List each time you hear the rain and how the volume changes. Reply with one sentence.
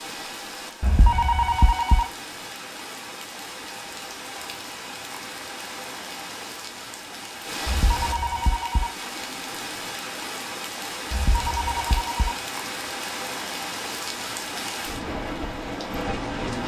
You can hear the rain from 0.0 to 16.6 s, getting louder.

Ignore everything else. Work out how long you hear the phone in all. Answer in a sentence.
The phone can be heard for 4 seconds in total.